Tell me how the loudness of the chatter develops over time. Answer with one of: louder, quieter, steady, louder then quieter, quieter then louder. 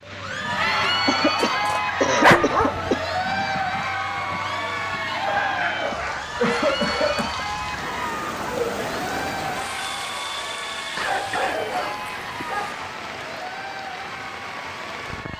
quieter.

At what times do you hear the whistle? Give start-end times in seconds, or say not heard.
not heard.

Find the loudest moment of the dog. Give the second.
2 s.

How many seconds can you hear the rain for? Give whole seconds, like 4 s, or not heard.
15 s.